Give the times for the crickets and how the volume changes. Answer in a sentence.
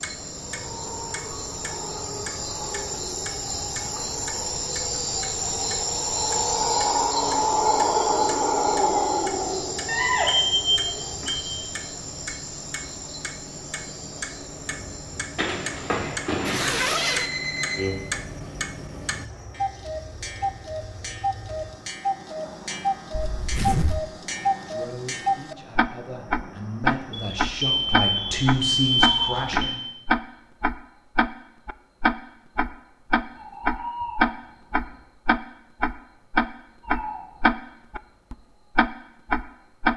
The crickets can be heard from 0.0 to 39.9 s, getting quieter.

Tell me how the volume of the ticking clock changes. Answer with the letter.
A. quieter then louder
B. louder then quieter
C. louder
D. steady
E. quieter
C.